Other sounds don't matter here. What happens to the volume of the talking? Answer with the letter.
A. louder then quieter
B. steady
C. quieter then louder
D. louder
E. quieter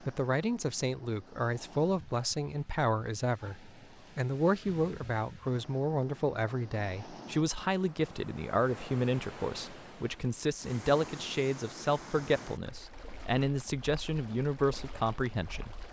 B.